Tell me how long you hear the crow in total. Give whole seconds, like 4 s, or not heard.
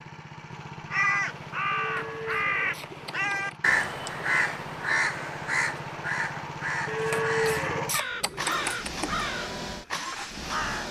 10 s.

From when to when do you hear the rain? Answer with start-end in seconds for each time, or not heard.
not heard.